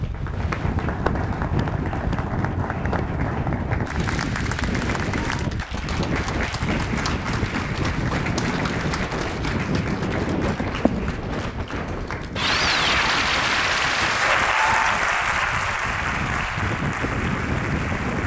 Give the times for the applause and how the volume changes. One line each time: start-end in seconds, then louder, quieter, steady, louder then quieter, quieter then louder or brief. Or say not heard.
0.0-18.2 louder.